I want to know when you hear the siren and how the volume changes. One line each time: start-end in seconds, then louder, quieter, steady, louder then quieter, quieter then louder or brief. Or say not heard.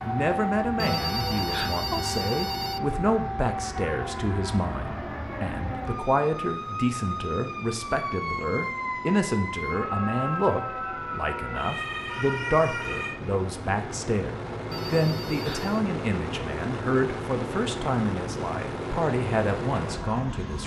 0.0-13.2 steady.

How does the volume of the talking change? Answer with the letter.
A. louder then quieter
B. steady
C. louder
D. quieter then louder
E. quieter
B.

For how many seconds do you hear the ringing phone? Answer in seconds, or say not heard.
3 s.